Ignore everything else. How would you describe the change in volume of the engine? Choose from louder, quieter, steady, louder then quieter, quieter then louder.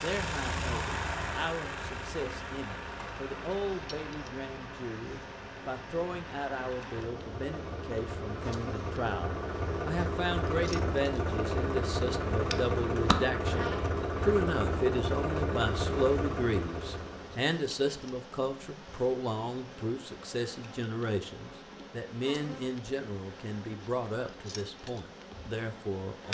quieter then louder.